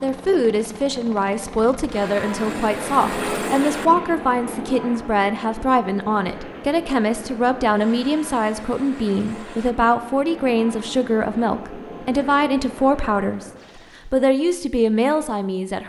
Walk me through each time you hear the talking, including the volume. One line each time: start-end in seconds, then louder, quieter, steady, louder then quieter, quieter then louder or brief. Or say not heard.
0.0-13.4 steady
14.1-15.8 brief.